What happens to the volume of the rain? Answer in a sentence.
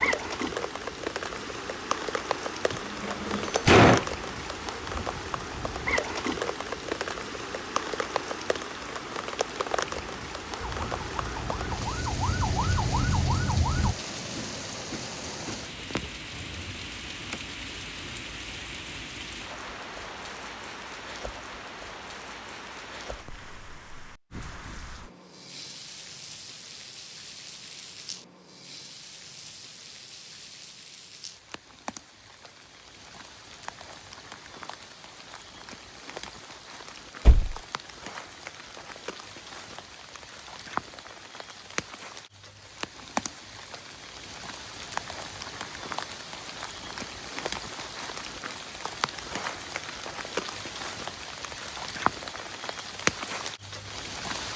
The volume of the rain goes down, then up.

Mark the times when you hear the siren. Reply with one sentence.
The siren can be heard from 10.6 to 13.9 s.